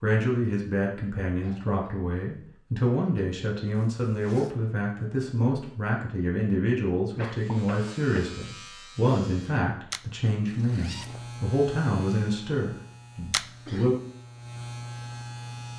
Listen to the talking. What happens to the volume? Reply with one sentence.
The volume of the talking stays about the same.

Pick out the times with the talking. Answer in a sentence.
The talking can be heard from 0.0 to 13.9 s.